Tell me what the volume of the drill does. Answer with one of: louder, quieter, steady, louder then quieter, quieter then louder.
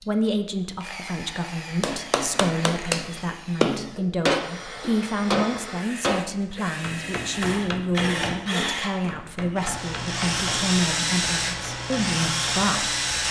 louder.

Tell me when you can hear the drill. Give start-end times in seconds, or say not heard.
0.0-13.2.